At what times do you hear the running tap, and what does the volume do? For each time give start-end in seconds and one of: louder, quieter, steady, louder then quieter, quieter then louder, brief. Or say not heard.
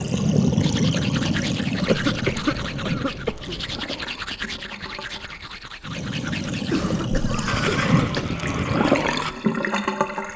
0.0-10.3 quieter then louder.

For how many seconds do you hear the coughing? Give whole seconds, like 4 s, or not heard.
3 s.